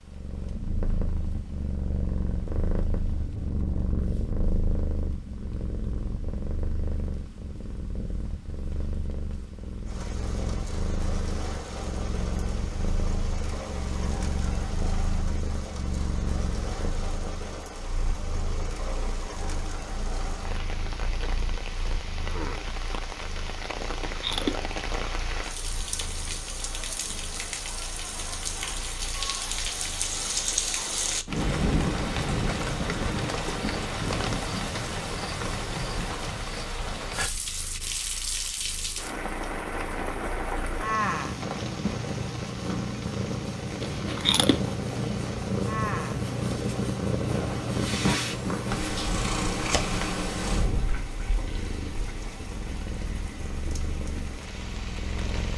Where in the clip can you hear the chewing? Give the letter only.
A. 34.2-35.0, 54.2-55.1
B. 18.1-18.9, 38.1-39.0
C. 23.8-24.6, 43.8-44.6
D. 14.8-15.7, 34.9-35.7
C.